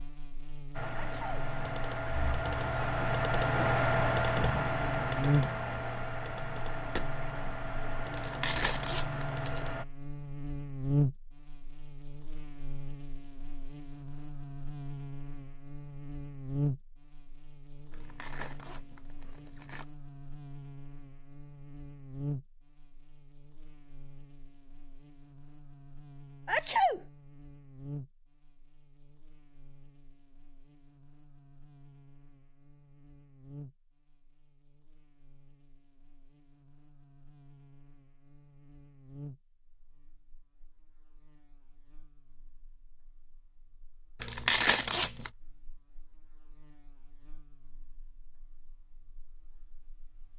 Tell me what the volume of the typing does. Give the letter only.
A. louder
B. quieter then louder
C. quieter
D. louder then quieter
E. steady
D.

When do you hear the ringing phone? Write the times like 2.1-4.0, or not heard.
not heard.